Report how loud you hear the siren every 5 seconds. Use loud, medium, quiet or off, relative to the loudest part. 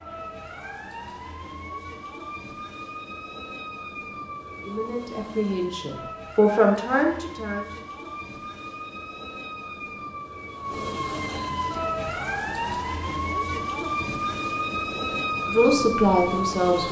medium, medium, loud, loud.